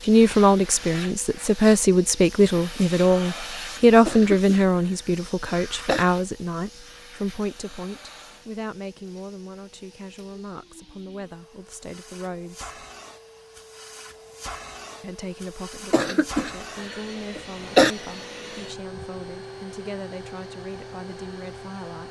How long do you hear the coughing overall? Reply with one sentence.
The coughing can be heard for 4 seconds in total.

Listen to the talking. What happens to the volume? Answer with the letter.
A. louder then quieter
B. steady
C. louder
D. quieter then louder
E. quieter
E.